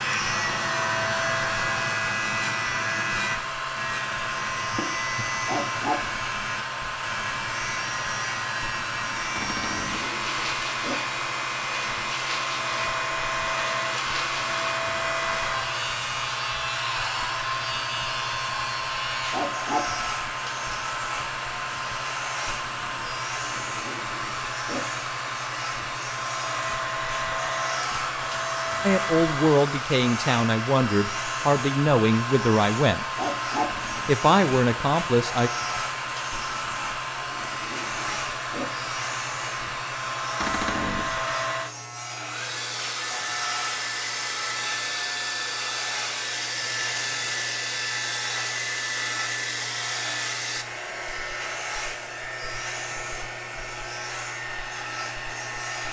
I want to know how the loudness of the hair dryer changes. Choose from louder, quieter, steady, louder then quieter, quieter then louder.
steady.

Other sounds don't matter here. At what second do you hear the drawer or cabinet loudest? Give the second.
41 s.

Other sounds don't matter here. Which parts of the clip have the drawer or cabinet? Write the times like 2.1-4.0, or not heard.
9.3-10.1, 33.7-34.2, 40.4-41.1.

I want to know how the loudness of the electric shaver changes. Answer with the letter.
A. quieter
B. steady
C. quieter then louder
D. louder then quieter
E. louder
A.